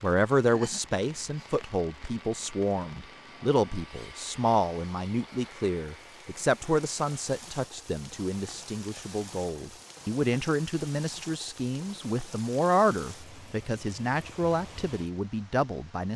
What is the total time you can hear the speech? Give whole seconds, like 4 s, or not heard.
16 s.